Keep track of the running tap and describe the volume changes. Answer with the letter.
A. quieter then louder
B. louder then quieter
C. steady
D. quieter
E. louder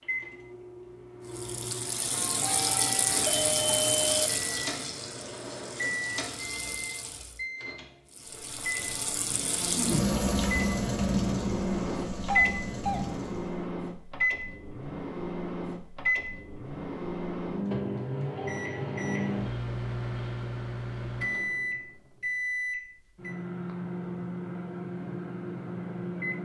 A.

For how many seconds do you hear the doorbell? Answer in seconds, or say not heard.
3 s.